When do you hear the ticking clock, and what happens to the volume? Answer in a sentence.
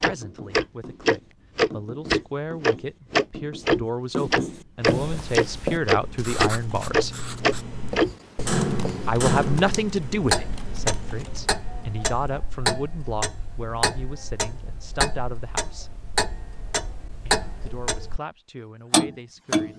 The ticking clock can be heard from 0.0 to 18.2 s, getting quieter; and briefly from 18.9 to 19.7 s.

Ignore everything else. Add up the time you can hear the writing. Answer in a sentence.
You can hear the writing for 9 seconds altogether.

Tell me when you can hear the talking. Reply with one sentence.
The talking can be heard from 0.0 to 7.2 s, from 9.1 to 15.9 s and from 17.2 to 19.7 s.